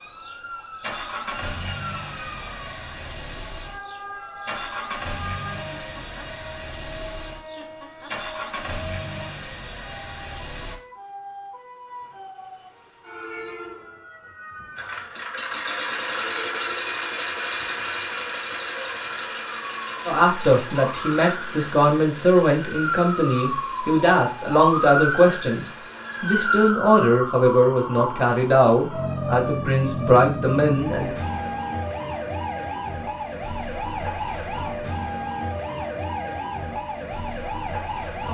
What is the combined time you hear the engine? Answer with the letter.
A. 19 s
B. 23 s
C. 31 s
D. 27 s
B.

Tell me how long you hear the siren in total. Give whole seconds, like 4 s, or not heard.
38 s.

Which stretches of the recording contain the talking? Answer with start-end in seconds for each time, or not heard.
20.1-31.1.